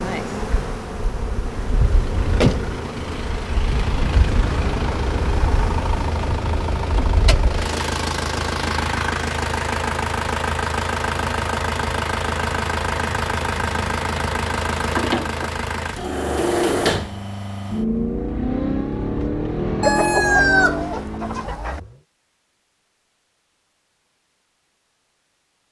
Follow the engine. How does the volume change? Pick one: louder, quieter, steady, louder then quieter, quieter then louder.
steady.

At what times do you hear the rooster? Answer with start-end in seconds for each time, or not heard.
19.8-21.8.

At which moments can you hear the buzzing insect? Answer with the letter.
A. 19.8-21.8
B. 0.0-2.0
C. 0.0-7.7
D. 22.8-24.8
C.